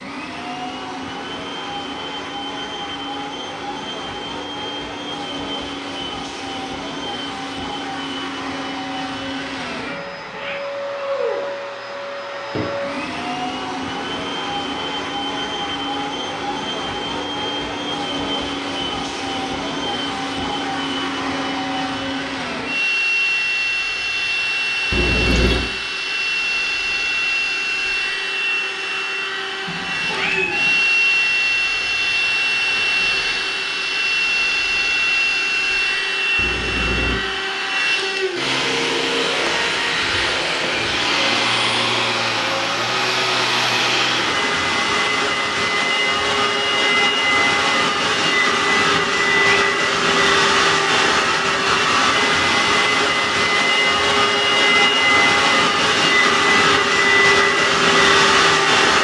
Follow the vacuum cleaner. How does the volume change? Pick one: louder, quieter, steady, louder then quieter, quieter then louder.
louder.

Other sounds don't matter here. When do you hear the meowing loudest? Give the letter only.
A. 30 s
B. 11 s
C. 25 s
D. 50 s
A.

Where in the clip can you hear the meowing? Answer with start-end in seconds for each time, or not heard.
9.9-10.6, 29.6-30.8, 49.1-49.6.